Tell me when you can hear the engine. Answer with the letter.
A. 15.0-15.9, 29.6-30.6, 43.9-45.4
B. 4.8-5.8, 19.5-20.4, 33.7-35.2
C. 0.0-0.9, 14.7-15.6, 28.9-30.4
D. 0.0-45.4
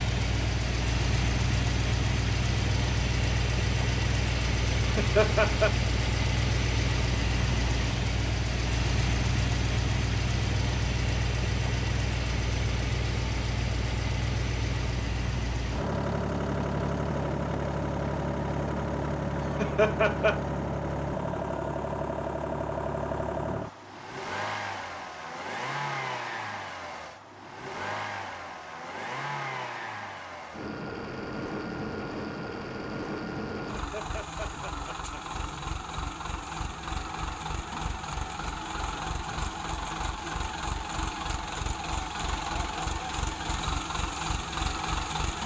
D.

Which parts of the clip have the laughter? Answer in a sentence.
The laughter can be heard from 4.8 to 5.8 s, from 19.5 to 20.4 s and from 33.7 to 35.2 s.